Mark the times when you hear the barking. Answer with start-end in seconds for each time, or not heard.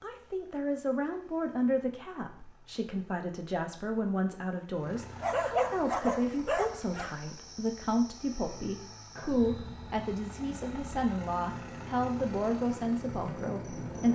5.2-7.2.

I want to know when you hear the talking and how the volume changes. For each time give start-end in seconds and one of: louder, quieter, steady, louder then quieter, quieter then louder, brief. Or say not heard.
0.0-14.1 steady.